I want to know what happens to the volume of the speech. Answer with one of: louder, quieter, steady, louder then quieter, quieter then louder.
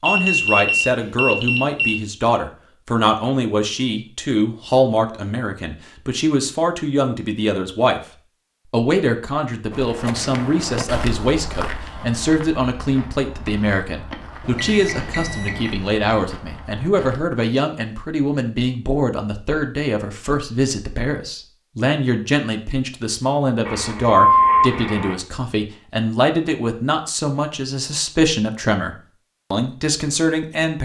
steady.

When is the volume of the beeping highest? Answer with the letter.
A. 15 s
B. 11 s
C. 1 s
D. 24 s
D.